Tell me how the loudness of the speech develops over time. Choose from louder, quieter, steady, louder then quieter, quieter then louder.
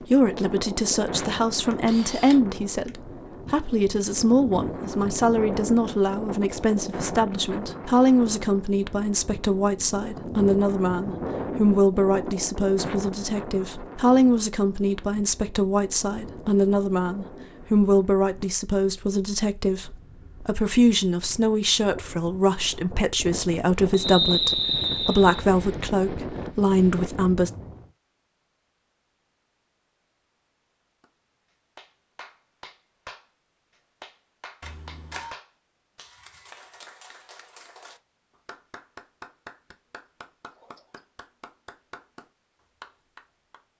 steady.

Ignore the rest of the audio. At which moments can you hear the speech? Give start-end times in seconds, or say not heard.
0.1-27.5.